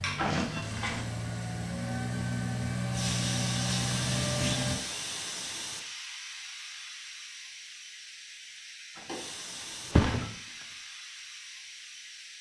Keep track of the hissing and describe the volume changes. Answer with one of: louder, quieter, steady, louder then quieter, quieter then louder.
louder then quieter.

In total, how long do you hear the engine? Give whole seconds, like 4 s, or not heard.
5 s.